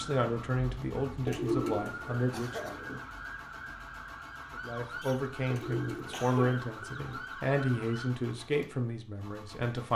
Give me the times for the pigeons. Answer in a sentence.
The pigeons can be heard from 1.2 to 3.0 s and from 5.5 to 7.2 s.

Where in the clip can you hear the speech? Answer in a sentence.
The speech can be heard from 0.0 to 2.7 s and from 4.5 to 9.9 s.